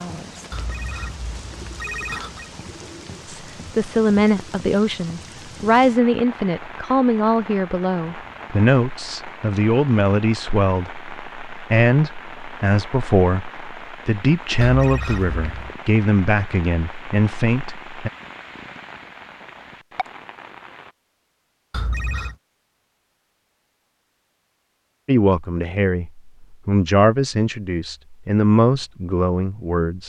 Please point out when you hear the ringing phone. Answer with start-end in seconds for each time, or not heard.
0.5-2.5, 14.6-15.8, 21.7-22.4.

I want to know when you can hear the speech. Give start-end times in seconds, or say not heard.
3.2-18.1, 25.1-30.0.